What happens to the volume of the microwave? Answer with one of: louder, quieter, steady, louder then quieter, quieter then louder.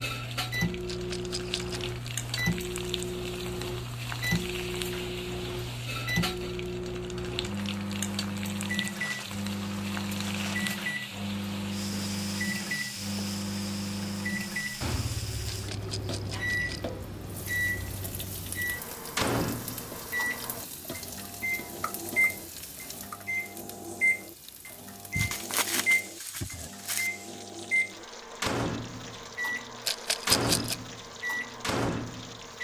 steady.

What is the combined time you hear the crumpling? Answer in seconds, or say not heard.
4 s.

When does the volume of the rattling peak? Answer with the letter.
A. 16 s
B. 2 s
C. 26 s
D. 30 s
D.